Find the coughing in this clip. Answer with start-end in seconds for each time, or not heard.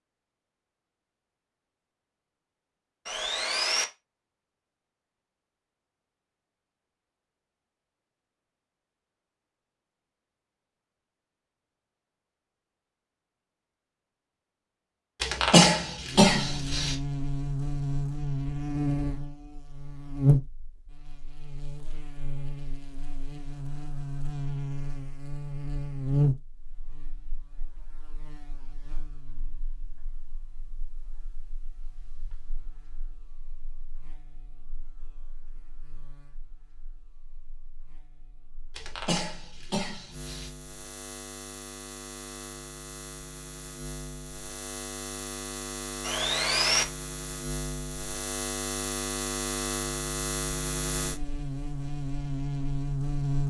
15.2-16.9, 38.8-40.5.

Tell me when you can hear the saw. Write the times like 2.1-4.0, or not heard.
3.0-3.9, 46.0-46.9.